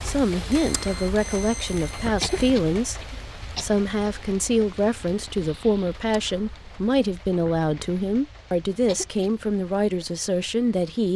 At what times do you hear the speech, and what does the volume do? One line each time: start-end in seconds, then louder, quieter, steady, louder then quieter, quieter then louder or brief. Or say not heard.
0.0-11.1 steady.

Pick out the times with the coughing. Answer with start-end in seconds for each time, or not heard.
2.2-3.6, 8.8-9.3.